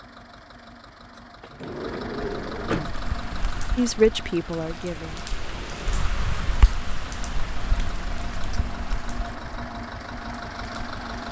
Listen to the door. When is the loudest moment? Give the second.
3 s.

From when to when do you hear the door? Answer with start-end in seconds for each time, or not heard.
1.4-3.0.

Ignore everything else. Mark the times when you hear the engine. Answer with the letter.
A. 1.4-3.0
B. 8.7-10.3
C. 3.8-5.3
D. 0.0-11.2
D.